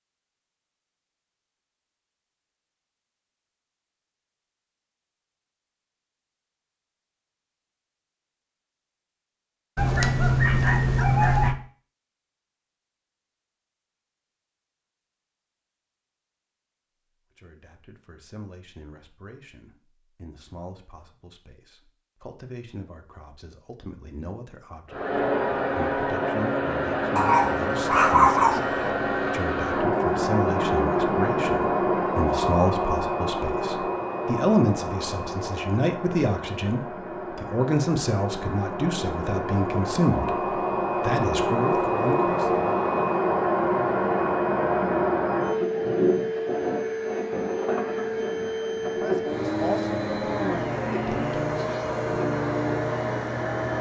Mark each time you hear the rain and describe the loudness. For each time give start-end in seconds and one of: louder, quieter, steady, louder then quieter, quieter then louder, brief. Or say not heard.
not heard.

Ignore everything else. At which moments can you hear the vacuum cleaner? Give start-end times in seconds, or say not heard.
24.9-53.7.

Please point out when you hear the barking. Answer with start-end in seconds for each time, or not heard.
9.8-11.6, 27.1-28.9.